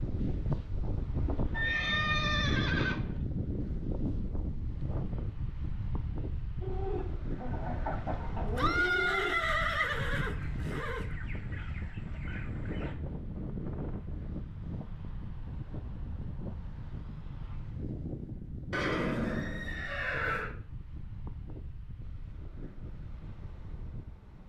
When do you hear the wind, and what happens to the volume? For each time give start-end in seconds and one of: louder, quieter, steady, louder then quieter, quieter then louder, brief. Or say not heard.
0.0-24.4 quieter.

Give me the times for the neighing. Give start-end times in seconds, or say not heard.
1.5-3.2, 8.4-11.1, 18.7-20.6.